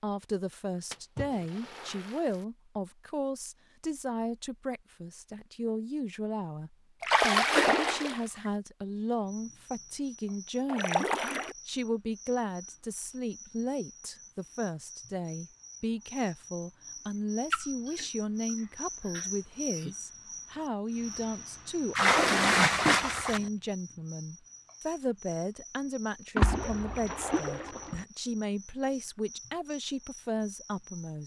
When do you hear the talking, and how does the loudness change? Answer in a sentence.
You can hear the talking from 0.0 to 11.1 s, at a steady volume; and from 11.7 to 31.2 s, at a steady volume.